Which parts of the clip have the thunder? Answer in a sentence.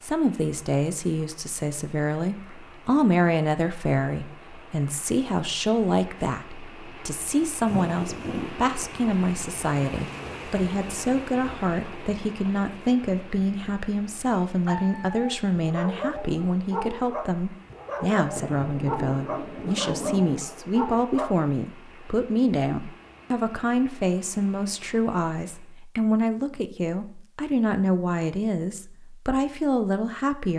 The thunder can be heard from 7.7 to 8.5 s and from 18.4 to 20.4 s.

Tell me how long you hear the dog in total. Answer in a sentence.
You can hear the dog for 7 seconds altogether.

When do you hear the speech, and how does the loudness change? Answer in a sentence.
You can hear the speech from 0.0 to 30.5 s, at a steady volume.